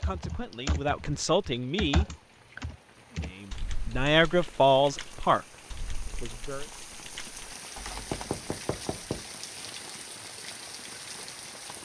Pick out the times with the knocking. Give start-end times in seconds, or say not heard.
8.1-9.3.